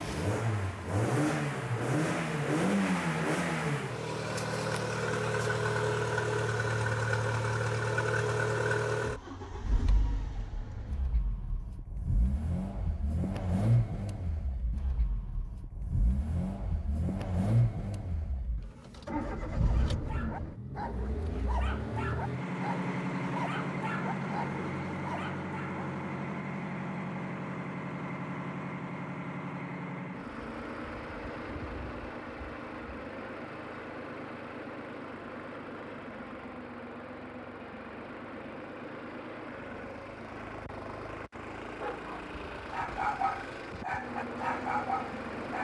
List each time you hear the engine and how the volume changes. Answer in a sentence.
The engine can be heard from 0.0 to 45.5 s, getting quieter.